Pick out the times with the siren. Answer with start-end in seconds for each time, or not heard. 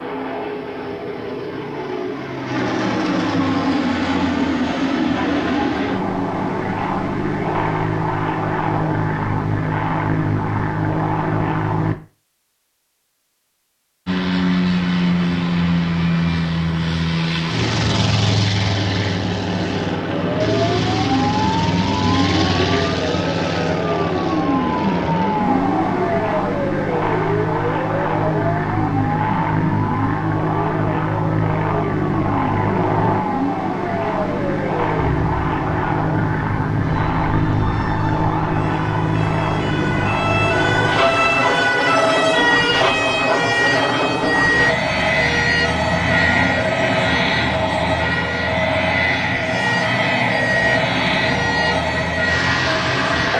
20.2-53.3.